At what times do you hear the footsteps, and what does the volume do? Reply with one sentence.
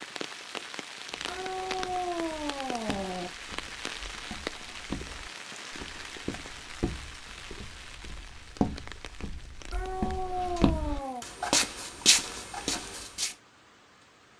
The footsteps can be heard from 1.1 to 13.3 s, getting louder.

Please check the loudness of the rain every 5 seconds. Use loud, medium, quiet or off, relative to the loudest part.
loud, medium, quiet.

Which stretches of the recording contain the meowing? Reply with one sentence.
The meowing can be heard from 1.2 to 3.3 s and from 9.7 to 11.2 s.